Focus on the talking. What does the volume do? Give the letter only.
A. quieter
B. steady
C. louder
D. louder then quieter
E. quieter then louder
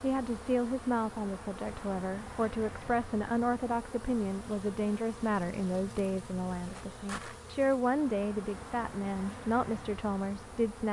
B.